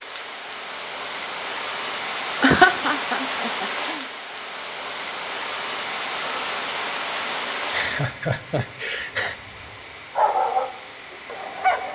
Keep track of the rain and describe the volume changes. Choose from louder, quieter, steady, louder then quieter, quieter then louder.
quieter.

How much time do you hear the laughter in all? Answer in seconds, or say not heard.
3 s.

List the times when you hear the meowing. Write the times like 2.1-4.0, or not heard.
not heard.